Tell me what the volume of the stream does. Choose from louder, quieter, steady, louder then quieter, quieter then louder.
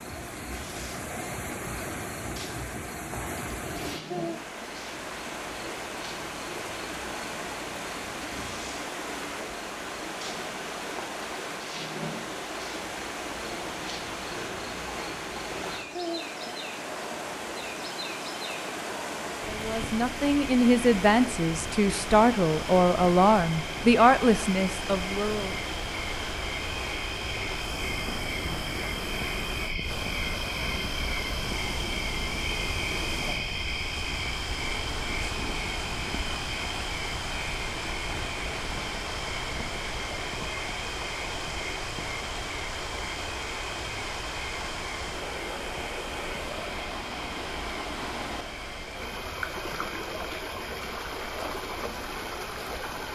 steady.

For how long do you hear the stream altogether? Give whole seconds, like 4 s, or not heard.
53 s.